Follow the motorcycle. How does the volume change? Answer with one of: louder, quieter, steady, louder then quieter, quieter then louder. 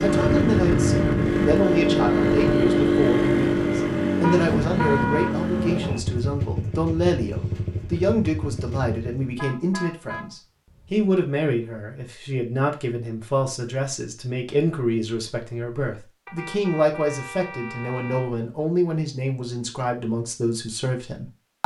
quieter.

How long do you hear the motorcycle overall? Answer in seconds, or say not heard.
9 s.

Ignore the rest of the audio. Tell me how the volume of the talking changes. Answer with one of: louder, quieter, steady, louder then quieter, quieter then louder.
steady.